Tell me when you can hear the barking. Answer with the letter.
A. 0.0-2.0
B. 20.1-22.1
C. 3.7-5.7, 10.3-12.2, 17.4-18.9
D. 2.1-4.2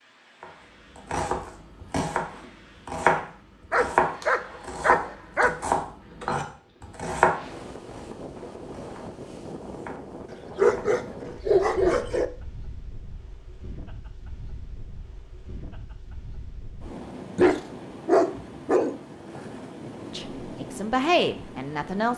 C.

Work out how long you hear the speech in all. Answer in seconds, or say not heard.
2 s.